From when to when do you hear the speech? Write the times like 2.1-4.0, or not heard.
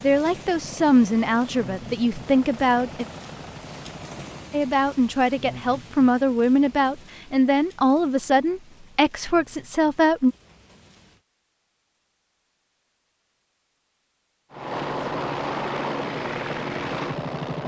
0.0-3.0, 4.5-10.3.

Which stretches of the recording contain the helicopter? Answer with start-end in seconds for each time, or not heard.
0.1-4.7, 14.5-17.6.